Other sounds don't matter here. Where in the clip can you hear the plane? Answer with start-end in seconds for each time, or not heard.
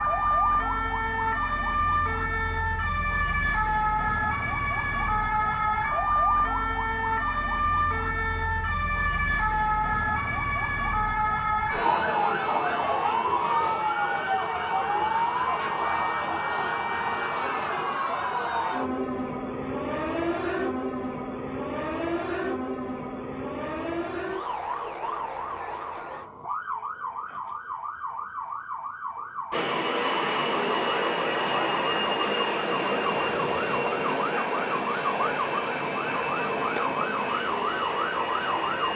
29.5-38.9.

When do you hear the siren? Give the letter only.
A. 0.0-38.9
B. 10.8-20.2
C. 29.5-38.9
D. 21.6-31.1
A.